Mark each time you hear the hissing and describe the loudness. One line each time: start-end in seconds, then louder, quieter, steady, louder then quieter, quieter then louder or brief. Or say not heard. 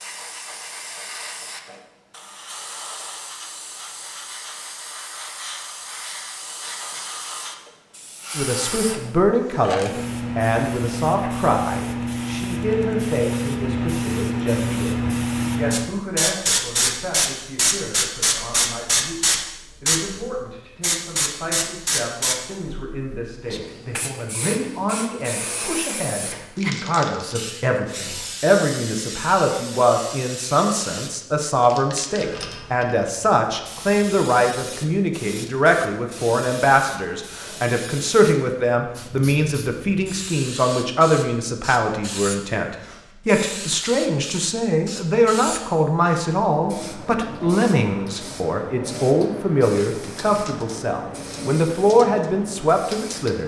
0.0-53.4 louder then quieter.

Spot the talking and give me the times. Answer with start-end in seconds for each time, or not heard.
8.3-53.4.